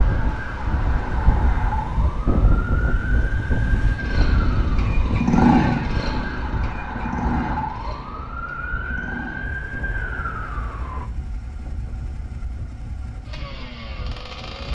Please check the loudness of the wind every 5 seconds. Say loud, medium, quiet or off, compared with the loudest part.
loud, medium, quiet.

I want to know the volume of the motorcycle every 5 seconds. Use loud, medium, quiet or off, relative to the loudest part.
medium, loud, quiet.